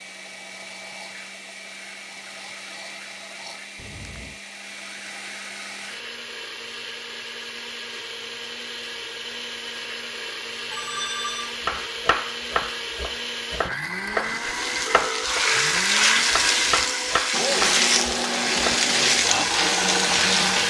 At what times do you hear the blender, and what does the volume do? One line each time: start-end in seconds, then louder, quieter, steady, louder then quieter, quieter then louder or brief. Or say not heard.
0.0-20.6 louder.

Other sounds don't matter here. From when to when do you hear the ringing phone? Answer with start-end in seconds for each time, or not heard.
3.8-4.4, 10.7-11.6, 14.8-15.8.